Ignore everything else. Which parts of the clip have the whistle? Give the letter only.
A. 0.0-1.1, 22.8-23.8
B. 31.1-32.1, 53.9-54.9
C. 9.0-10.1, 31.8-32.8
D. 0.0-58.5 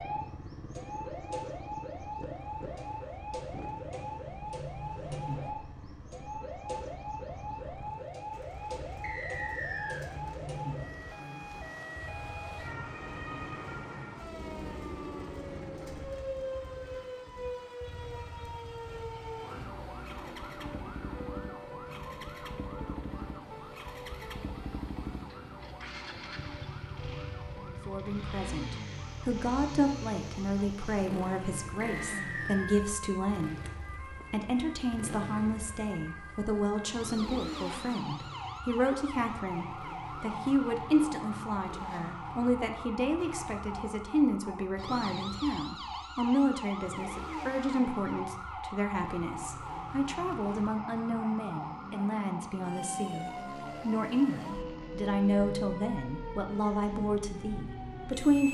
C.